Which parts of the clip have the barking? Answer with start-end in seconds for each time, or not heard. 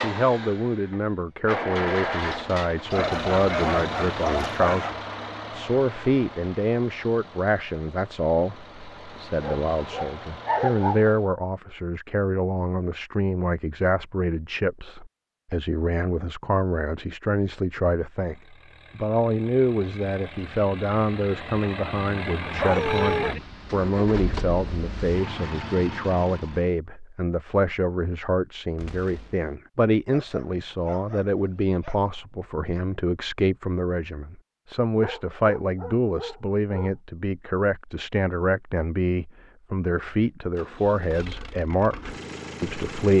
2.9-5.0, 9.4-11.2, 22.6-23.4, 30.1-31.9, 35.0-37.0.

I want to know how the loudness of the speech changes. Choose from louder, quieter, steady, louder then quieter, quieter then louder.
steady.